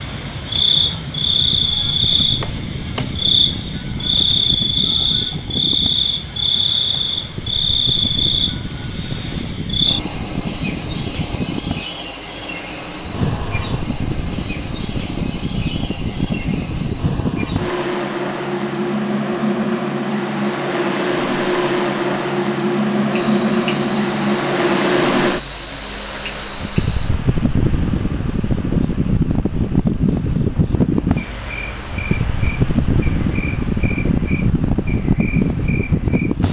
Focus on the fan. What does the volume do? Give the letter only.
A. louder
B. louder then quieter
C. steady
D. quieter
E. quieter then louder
A.